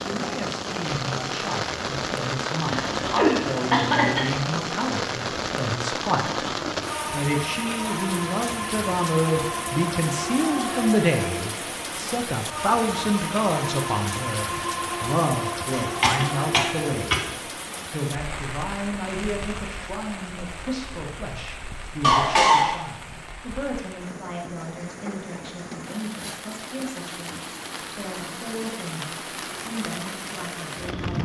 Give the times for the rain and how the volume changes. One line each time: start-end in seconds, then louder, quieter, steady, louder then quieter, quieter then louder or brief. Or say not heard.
0.0-31.2 quieter.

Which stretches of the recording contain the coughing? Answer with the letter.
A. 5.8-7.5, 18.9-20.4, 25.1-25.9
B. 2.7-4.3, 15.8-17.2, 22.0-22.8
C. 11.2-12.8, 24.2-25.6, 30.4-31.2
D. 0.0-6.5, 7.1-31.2
B.